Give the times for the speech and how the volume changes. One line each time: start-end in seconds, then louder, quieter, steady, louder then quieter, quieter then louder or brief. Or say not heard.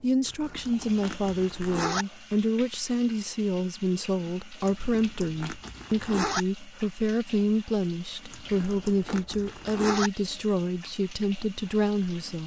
0.0-12.4 steady.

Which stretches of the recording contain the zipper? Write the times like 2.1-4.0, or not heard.
0.2-2.0, 4.7-6.5, 8.3-10.1.